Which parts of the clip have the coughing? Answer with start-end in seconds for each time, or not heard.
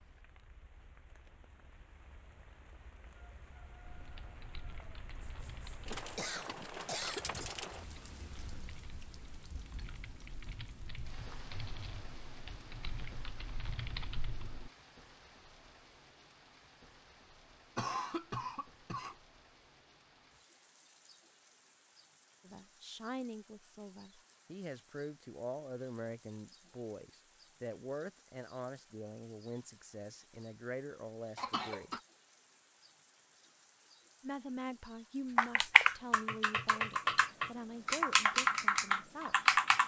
5.2-7.5, 17.8-19.1, 31.4-32.0.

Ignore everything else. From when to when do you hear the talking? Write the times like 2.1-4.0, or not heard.
22.4-31.9, 34.2-39.4.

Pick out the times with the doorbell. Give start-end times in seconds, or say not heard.
not heard.